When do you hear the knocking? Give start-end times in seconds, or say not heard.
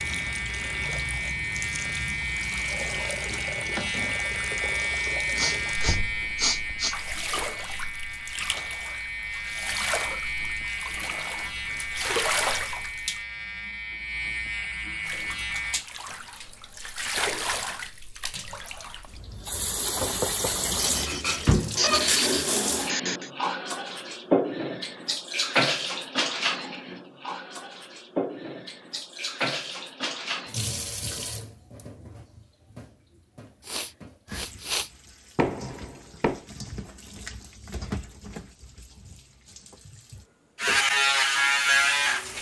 5.8-6.3, 19.9-20.6, 35.4-36.4.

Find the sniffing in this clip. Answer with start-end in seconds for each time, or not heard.
5.3-7.0, 20.8-23.3, 33.6-34.9.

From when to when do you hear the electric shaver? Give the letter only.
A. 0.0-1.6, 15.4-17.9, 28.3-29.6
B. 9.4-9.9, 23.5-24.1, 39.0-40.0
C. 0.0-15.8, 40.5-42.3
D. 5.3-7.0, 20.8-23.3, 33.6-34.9
C.